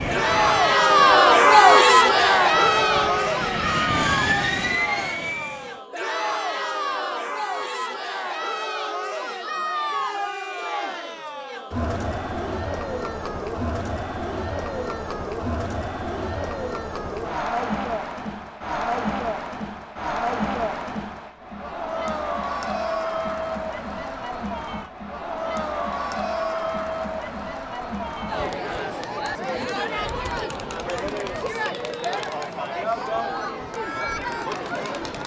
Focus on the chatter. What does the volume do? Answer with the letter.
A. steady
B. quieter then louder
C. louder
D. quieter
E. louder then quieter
D.